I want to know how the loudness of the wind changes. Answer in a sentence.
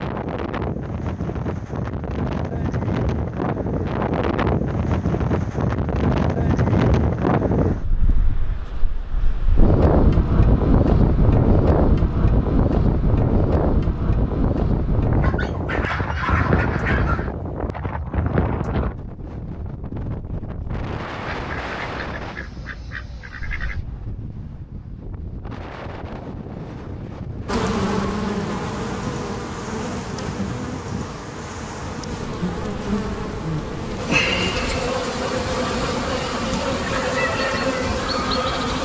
The loudness of the wind goes down.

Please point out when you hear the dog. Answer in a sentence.
You can hear the dog from 15.2 to 17.2 s.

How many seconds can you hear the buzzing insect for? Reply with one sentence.
The buzzing insect can be heard for 11 seconds in total.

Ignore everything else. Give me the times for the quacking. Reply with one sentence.
The quacking can be heard from 15.7 to 17.4 s and from 21.2 to 23.9 s.